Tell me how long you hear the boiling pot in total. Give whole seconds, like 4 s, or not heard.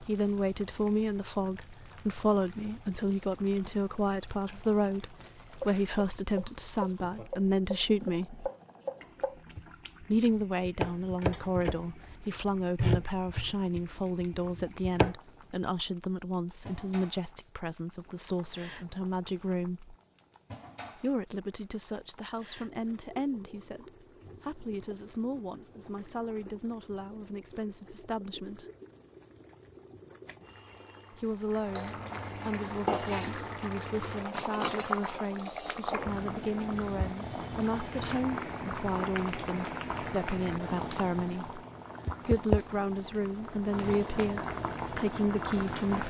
46 s.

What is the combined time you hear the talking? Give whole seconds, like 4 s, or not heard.
40 s.